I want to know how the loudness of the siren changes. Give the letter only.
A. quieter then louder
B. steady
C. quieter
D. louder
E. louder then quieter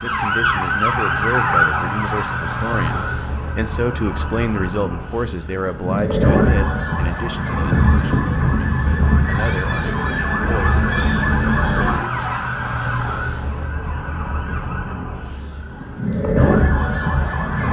B.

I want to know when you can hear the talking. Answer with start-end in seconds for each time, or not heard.
0.0-10.9.